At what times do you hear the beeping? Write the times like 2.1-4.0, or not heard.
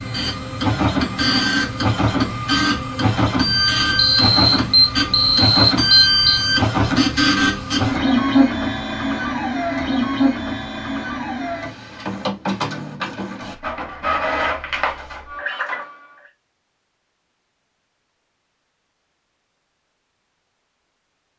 4.0-6.4.